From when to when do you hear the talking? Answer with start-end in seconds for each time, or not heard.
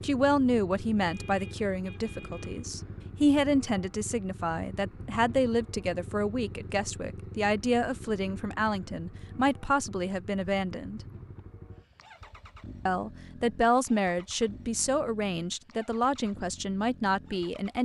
0.0-11.0, 12.8-17.7.